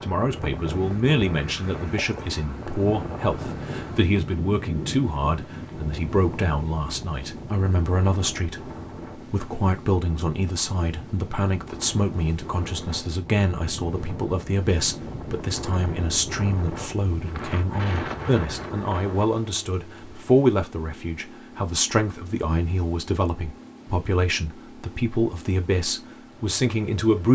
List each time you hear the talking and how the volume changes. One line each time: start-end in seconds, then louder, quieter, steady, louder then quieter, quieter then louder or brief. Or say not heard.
0.0-27.2 steady.